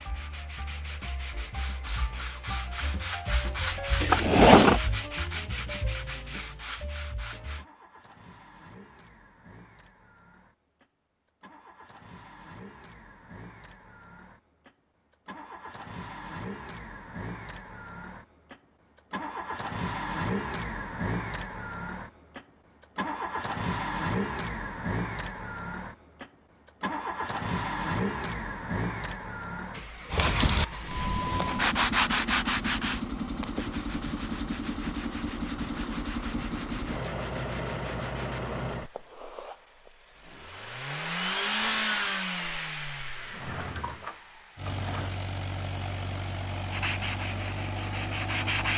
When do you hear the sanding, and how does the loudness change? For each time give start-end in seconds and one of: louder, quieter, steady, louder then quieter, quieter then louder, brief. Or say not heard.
0.0-7.7 louder then quieter
30.1-39.9 quieter
46.7-48.7 brief.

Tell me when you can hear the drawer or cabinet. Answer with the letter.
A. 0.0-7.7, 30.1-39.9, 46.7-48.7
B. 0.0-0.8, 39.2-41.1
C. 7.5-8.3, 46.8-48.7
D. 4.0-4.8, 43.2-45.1
D.